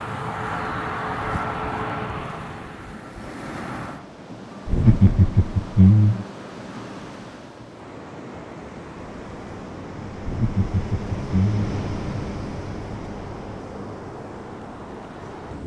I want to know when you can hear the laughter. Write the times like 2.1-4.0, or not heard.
4.7-6.2, 10.2-11.8.